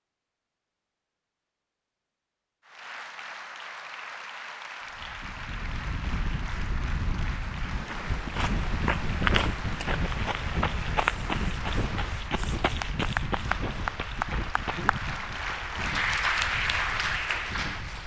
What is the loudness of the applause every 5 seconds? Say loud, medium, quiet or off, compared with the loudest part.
medium, medium, medium, loud.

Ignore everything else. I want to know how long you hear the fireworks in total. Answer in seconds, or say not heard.
not heard.